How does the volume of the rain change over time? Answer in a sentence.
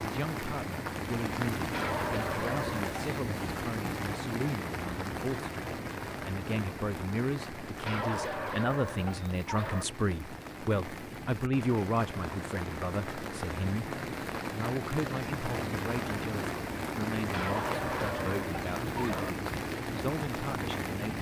The loudness of the rain goes down, then up.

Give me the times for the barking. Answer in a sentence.
You can hear the barking from 1.7 to 3.2 s, from 7.8 to 9.8 s and from 17.3 to 19.4 s.